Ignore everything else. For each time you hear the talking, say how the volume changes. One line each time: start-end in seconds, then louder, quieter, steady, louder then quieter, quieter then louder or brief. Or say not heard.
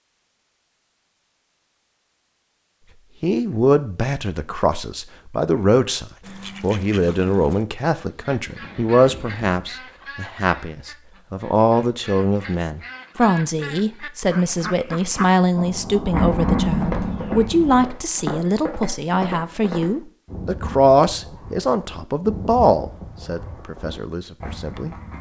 3.2-24.9 steady.